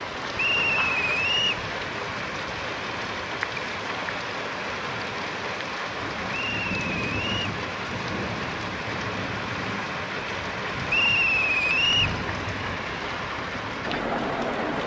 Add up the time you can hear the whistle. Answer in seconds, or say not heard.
4 s.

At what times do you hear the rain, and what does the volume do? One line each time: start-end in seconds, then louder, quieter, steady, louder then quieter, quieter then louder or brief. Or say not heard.
0.0-14.8 steady.